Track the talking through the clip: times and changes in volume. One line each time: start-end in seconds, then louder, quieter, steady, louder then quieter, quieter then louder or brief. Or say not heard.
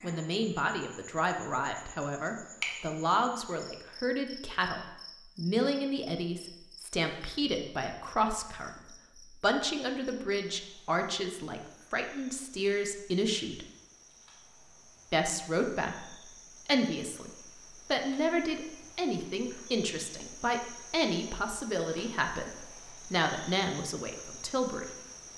0.0-13.7 steady
15.1-17.3 brief
17.9-24.9 steady.